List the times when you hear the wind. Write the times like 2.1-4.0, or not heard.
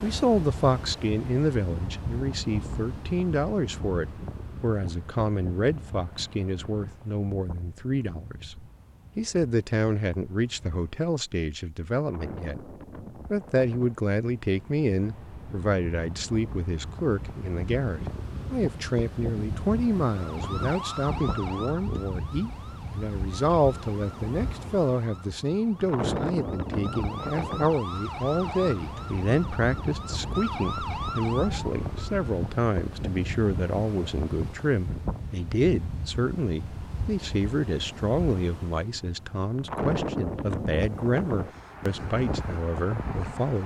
0.0-43.6.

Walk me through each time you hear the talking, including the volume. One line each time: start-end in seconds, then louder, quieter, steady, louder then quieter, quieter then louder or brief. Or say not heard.
0.0-12.7 steady
13.3-43.6 steady.